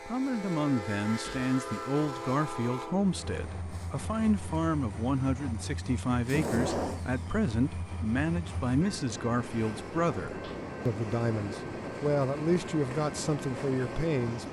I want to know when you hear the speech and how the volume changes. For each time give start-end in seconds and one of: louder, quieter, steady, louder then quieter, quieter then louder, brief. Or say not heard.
0.1-14.4 steady.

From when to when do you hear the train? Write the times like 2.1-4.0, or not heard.
0.0-14.4.